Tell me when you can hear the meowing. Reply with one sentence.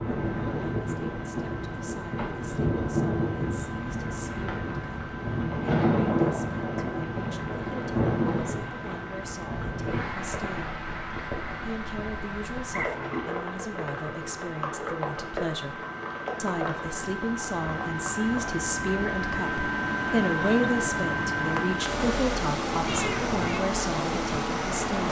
You can hear the meowing from 22.9 to 23.6 s.